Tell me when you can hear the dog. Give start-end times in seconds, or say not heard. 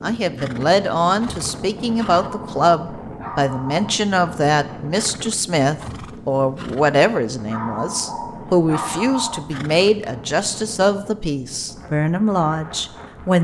2.1-4.0, 7.5-9.4.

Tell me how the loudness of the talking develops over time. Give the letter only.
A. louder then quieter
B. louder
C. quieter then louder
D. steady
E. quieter
D.